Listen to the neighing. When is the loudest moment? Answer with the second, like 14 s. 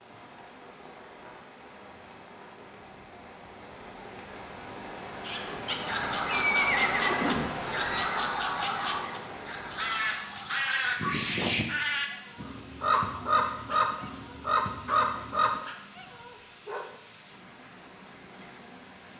7 s.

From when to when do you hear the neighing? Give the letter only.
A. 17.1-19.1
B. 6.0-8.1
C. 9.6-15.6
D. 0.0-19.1
B.